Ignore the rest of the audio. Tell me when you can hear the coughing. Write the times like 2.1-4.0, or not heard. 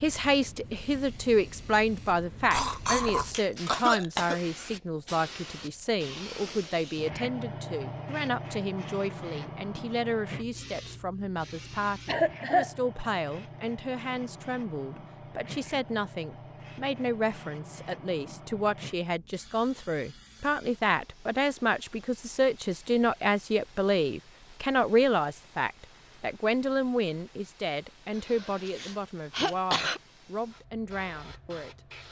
2.5-4.4, 12.1-12.8, 28.1-30.0.